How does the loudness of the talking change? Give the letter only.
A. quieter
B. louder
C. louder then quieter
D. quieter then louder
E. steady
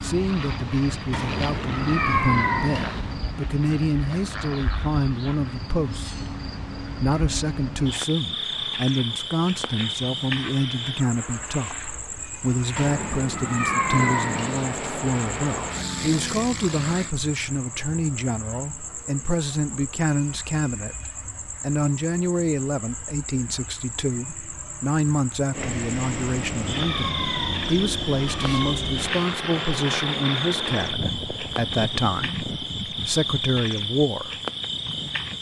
E.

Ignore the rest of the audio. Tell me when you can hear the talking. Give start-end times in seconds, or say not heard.
0.0-34.4.